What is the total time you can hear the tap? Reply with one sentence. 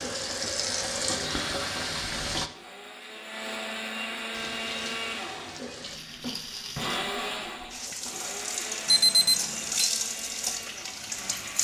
You can hear the tap for 10 seconds altogether.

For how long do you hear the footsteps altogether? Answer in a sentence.
You can't hear the footsteps here.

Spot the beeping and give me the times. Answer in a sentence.
You can hear the beeping from 8.8 to 9.9 s.